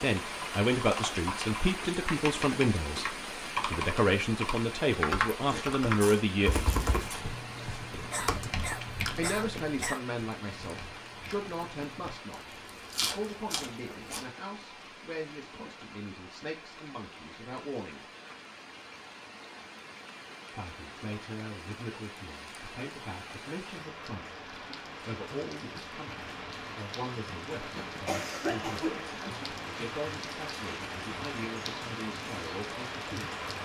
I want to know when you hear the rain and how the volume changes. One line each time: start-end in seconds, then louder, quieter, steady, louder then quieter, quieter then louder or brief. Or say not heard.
0.0-33.6 quieter then louder.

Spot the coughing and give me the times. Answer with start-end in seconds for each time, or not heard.
8.1-10.0, 27.6-29.3.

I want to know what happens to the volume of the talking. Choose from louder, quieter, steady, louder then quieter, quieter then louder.
quieter.